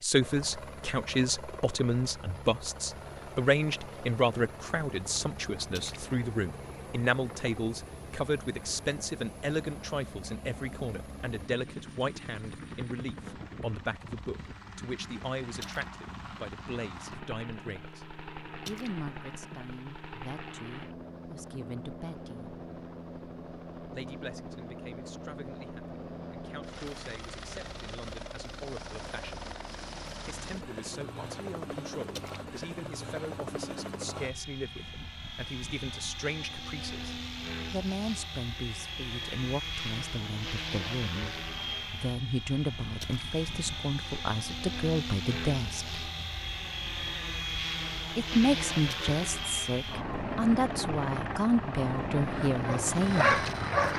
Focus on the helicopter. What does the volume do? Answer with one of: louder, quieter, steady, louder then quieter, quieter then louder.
louder.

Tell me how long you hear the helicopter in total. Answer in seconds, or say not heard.
54 s.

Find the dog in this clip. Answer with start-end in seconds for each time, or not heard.
52.5-53.9.